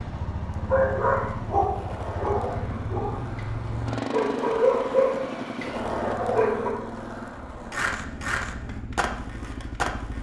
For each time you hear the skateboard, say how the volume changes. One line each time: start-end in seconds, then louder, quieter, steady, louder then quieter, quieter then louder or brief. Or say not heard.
0.0-10.1 louder.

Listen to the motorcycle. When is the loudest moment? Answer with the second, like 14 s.
4 s.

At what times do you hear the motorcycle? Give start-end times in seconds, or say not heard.
0.0-10.1.